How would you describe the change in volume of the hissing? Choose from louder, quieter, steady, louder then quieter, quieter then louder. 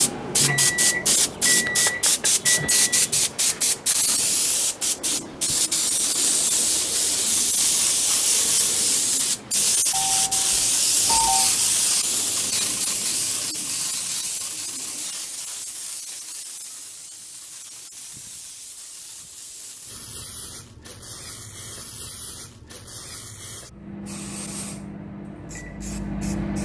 quieter.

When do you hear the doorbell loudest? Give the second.
11 s.